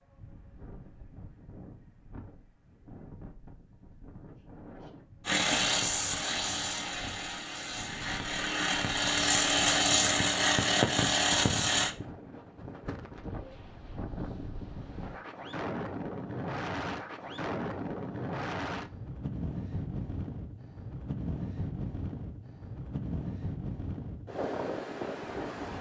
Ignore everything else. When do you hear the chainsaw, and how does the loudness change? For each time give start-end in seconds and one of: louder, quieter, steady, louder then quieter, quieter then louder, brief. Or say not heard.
5.2-11.9 quieter then louder.